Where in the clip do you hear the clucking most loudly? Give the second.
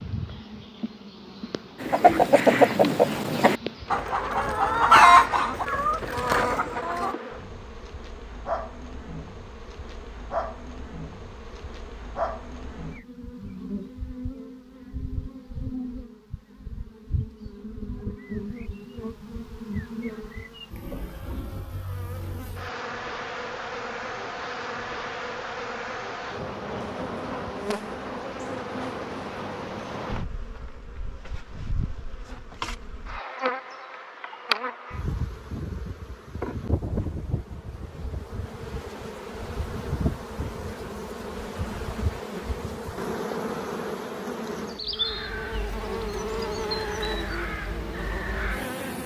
5 s.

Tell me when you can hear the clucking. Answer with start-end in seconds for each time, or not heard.
1.8-7.2.